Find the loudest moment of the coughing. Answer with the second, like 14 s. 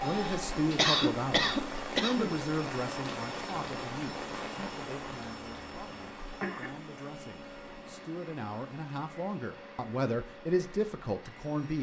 1 s.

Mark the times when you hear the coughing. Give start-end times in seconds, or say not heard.
0.1-2.4, 6.4-7.0.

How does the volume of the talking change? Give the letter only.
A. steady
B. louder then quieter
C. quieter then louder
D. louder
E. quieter
C.